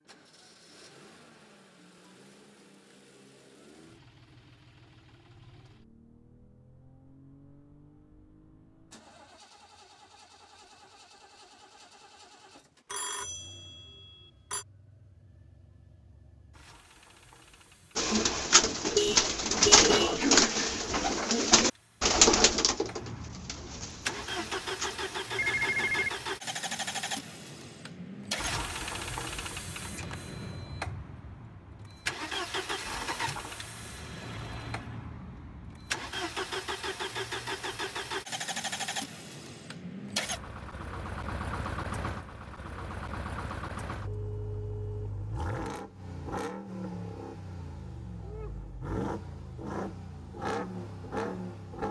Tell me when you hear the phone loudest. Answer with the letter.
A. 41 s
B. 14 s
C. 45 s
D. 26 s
D.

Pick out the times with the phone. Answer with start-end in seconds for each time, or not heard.
12.9-14.7, 25.4-26.1, 44.0-45.1.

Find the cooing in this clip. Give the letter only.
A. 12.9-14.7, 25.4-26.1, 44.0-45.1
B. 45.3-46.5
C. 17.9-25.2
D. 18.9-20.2
C.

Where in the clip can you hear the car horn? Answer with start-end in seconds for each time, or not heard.
18.9-20.2.